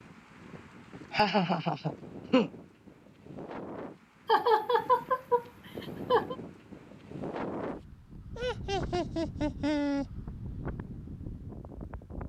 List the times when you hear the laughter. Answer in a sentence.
You can hear the laughter from 1.1 to 2.5 s, from 4.2 to 6.3 s and from 8.3 to 10.1 s.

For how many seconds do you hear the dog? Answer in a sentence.
The dog can't be heard in this clip.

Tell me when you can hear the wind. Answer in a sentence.
You can hear the wind from 0.0 to 12.2 s.